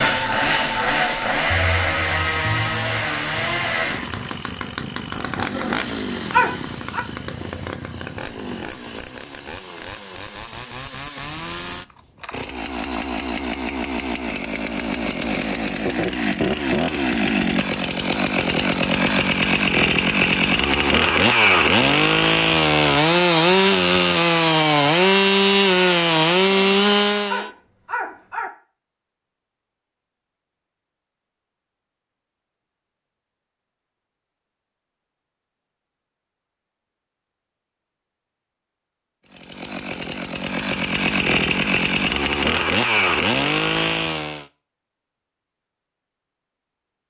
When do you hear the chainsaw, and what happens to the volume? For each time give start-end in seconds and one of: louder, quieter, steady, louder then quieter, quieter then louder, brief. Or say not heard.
0.0-27.5 quieter then louder
39.3-44.5 louder.